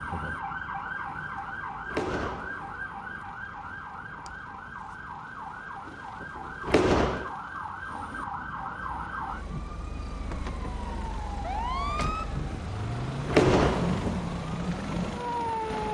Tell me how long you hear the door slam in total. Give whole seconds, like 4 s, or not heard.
5 s.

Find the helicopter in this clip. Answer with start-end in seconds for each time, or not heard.
0.0-15.8.